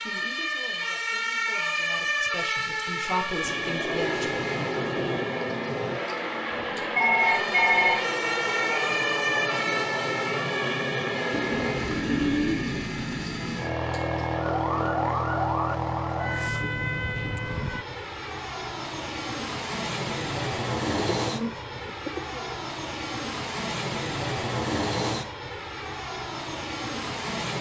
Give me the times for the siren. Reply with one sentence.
The siren can be heard from 0.0 to 17.9 s.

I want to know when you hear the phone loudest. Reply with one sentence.
The loudest moment of the phone is at 8 seconds.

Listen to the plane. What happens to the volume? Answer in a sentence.
The loudness of the plane stays about the same.